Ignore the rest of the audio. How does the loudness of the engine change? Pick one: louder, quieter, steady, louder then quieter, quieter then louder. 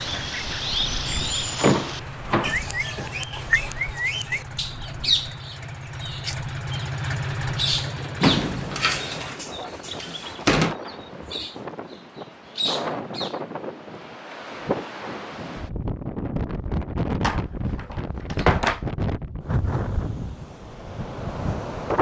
louder.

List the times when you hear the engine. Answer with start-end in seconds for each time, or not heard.
0.0-9.3.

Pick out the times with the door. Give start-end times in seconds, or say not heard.
1.6-3.6, 8.2-10.8, 17.2-18.8.